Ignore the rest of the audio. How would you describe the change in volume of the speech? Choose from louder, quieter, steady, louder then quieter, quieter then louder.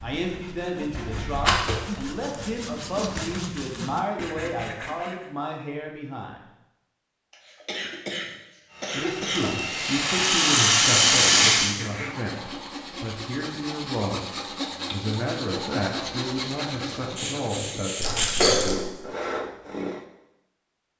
steady.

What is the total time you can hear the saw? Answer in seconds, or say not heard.
17 s.